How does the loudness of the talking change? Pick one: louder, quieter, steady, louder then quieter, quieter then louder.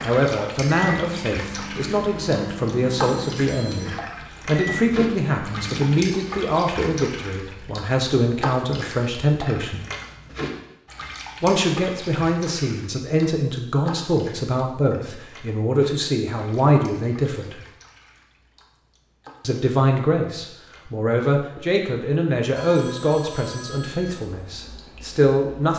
steady.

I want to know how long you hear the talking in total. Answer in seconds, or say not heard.
22 s.